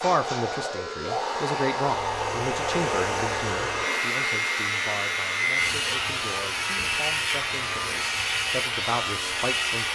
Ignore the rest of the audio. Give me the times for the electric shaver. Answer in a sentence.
The electric shaver can be heard from 0.0 to 9.9 s.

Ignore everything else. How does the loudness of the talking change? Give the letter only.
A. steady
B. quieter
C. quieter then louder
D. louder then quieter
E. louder
C.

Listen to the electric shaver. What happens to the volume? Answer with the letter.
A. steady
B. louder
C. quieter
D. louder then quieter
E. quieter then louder
B.